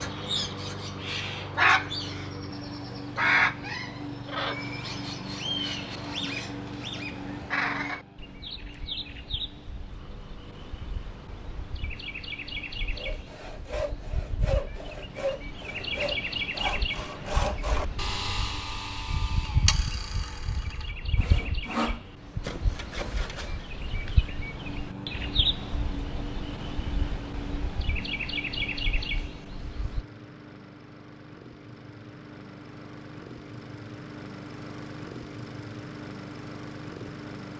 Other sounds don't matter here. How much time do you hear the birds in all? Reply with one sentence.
You can hear the birds for 30 seconds altogether.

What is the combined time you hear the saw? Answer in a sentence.
The saw can be heard for 11 seconds in total.